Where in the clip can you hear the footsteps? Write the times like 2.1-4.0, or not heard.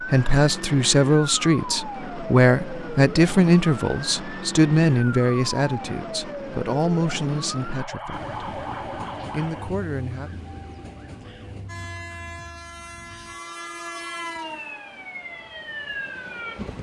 not heard.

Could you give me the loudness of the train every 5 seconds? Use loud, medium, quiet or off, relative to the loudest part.
off, loud, loud, loud.